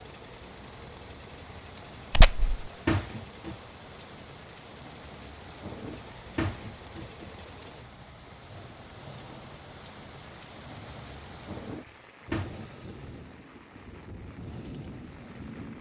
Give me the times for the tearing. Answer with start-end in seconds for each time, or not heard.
2.1-2.5.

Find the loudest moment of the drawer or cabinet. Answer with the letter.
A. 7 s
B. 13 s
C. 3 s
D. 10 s
C.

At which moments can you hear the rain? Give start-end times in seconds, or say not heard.
0.0-15.7.